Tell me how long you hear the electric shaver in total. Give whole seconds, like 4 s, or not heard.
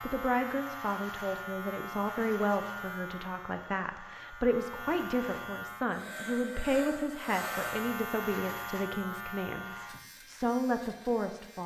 10 s.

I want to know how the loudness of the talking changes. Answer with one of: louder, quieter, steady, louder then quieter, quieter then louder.
steady.